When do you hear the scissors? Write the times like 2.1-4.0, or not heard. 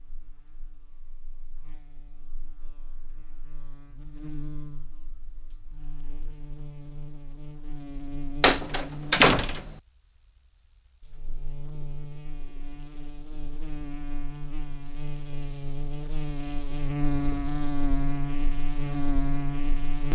not heard.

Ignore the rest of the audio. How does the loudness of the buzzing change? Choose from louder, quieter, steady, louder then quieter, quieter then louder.
louder.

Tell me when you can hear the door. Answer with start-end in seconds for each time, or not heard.
8.4-9.8.